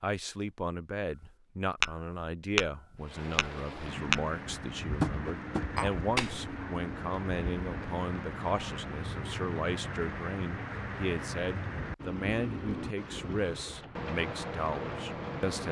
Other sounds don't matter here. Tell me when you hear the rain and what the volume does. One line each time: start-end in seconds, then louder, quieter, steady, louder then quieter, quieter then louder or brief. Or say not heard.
3.0-15.6 steady.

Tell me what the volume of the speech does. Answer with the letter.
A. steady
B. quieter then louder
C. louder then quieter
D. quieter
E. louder
A.